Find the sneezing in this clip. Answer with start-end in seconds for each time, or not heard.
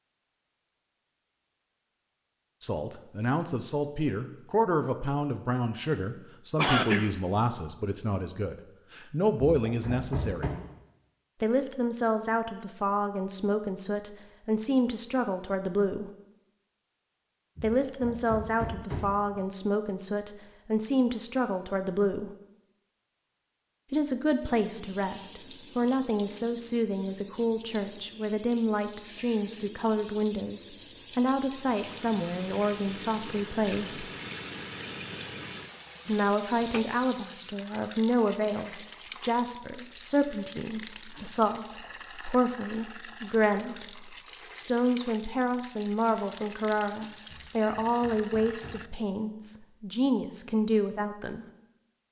6.5-7.1.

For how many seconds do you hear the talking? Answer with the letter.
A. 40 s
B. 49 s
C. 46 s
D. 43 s
D.